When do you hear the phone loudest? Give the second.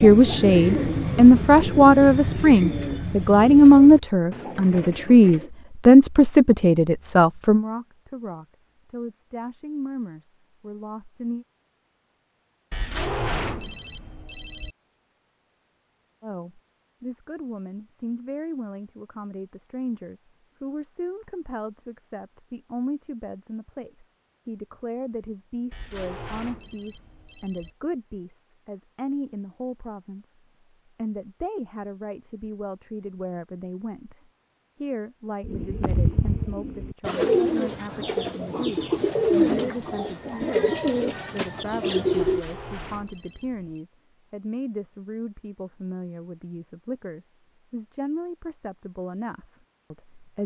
13 s.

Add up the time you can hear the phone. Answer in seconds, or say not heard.
6 s.